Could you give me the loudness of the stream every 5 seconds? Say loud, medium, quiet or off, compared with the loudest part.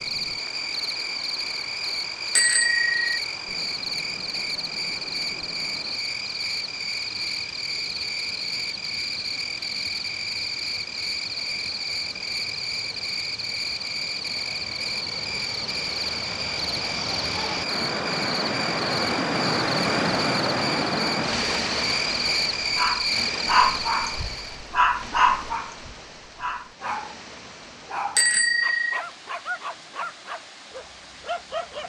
quiet, quiet, quiet, loud, loud, quiet, quiet.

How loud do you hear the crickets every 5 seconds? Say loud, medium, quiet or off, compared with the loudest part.
loud, loud, loud, loud, loud, off, off.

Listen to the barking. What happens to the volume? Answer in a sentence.
The loudness of the barking goes down.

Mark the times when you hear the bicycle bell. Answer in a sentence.
You can hear the bicycle bell from 2.4 to 3.0 s and from 28.1 to 29.0 s.